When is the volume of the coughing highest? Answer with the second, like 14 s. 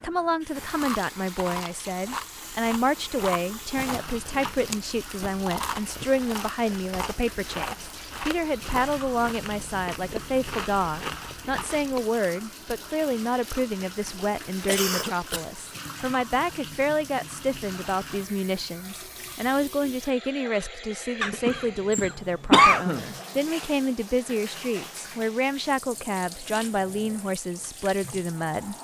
23 s.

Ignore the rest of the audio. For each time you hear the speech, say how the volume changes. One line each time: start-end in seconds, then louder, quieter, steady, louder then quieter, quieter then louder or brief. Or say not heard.
0.0-28.7 steady.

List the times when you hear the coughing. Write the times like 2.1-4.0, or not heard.
3.8-5.5, 14.7-15.4, 21.2-23.1.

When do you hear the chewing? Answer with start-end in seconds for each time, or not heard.
0.8-12.1.